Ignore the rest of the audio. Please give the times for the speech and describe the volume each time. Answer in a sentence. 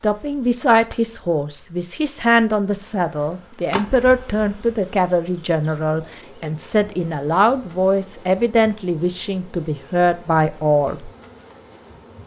You can hear the speech from 0.0 to 11.1 s, at a steady volume.